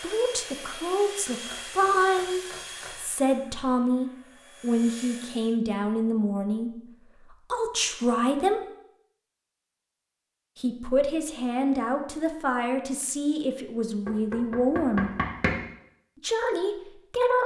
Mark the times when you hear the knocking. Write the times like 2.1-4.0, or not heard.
1.4-3.0, 14.1-15.6.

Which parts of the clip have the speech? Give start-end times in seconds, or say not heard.
0.0-8.6, 10.6-15.1, 16.2-17.4.